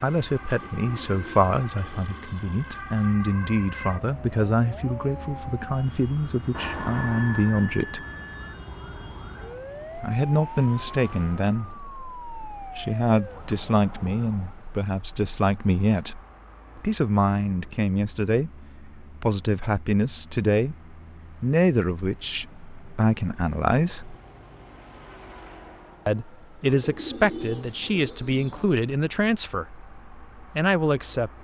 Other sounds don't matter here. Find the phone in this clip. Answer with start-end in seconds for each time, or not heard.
6.5-8.6.